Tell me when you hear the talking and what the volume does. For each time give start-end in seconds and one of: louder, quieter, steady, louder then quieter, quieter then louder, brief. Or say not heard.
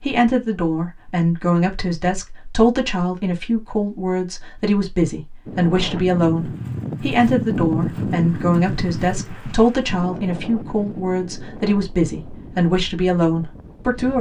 0.0-14.1 steady.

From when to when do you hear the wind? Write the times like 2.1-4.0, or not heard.
5.5-14.1.